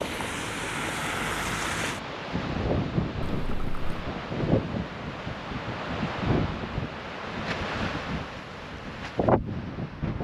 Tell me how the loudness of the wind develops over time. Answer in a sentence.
The loudness of the wind stays about the same.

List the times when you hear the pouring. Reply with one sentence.
You can hear the pouring from 3.2 to 4.0 s.